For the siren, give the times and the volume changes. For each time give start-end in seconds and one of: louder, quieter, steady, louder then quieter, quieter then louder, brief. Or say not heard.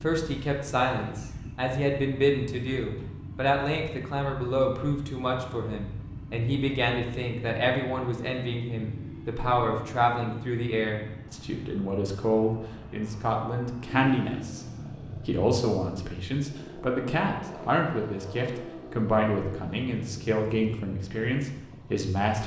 not heard.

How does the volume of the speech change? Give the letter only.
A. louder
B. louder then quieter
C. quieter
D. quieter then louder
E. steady
E.